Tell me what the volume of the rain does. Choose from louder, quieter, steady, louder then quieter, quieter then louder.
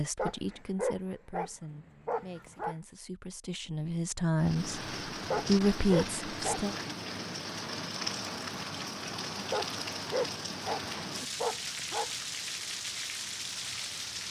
steady.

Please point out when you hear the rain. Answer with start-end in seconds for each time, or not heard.
4.3-14.2.